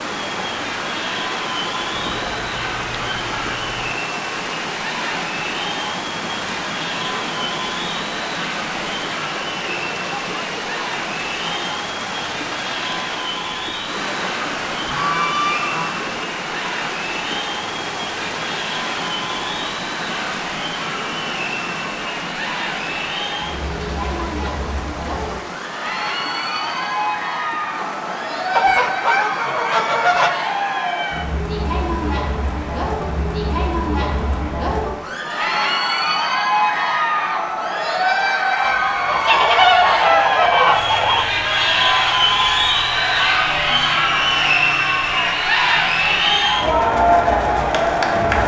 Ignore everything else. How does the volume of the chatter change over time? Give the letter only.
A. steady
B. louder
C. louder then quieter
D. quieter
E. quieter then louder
B.